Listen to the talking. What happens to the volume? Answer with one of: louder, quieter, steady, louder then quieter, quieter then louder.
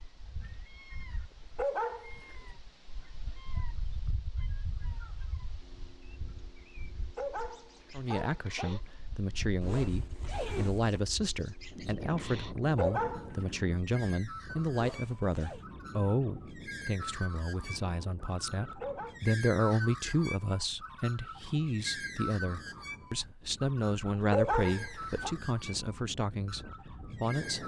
steady.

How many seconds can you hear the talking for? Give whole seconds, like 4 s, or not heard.
20 s.